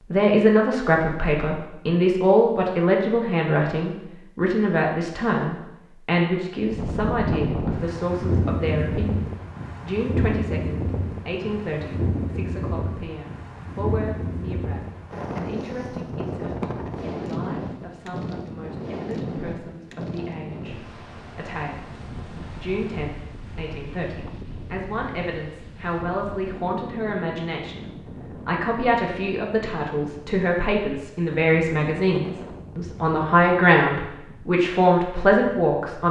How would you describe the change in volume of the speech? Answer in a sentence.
The loudness of the speech goes down, then up.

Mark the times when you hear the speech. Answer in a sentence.
The speech can be heard from 0.1 to 36.0 s.